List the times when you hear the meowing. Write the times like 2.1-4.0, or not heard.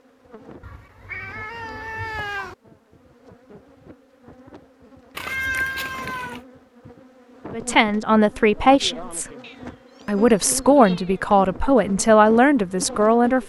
0.6-2.5, 5.2-6.4, 9.4-11.2.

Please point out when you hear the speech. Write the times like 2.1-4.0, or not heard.
7.5-9.2, 10.1-13.4.